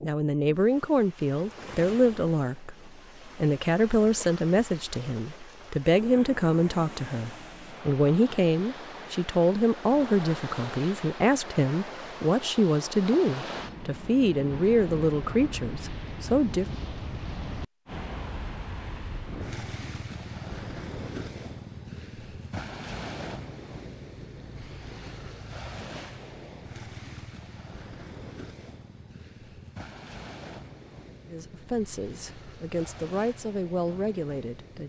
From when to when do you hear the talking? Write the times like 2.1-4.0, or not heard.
0.0-16.6, 31.2-34.8.